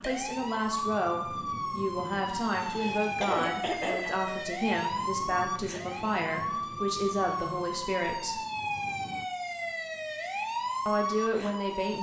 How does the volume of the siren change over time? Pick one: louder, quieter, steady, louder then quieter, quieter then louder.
steady.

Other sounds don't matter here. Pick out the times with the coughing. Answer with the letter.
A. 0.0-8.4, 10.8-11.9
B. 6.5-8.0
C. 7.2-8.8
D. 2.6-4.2
D.